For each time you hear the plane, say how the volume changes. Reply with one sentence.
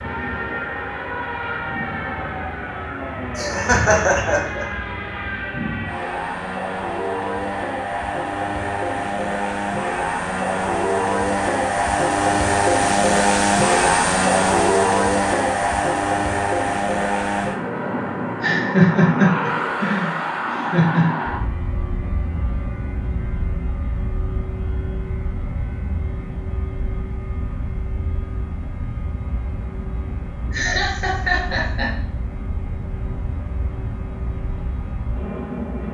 The plane can be heard from 0.0 to 35.8 s, getting louder then quieter.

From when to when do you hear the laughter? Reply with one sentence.
The laughter can be heard from 3.4 to 4.7 s, from 18.4 to 21.1 s and from 30.5 to 31.9 s.